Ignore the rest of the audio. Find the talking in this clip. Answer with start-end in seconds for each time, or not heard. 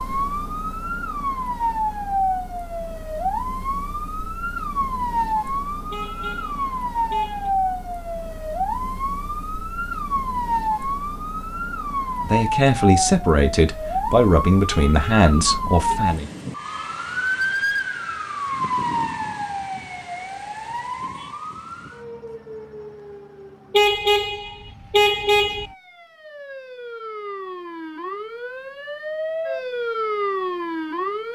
12.2-16.3.